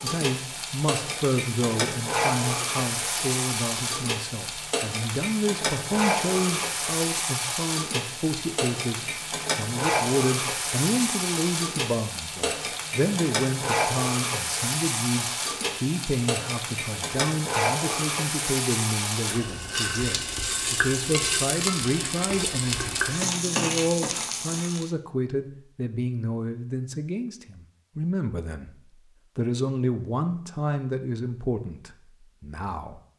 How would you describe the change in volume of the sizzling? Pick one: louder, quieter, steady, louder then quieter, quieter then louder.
steady.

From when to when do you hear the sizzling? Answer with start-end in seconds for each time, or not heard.
0.0-24.9.